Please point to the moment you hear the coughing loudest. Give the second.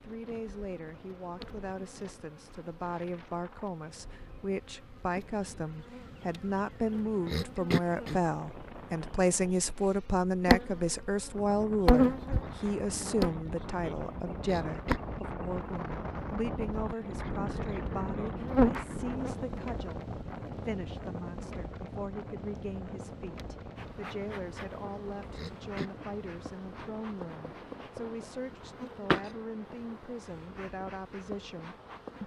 8 s.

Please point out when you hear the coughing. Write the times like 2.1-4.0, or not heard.
7.2-8.2, 14.4-15.0, 25.3-25.9.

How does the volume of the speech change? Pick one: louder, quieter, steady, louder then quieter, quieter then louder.
louder then quieter.